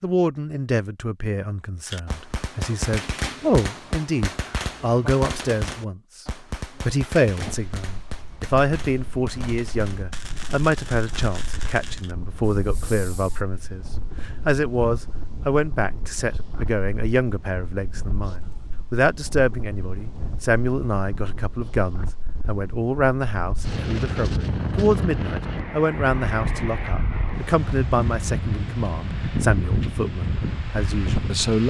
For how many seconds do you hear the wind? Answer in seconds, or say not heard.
24 s.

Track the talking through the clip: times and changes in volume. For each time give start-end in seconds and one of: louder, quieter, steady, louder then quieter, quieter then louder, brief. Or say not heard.
0.0-31.6 steady.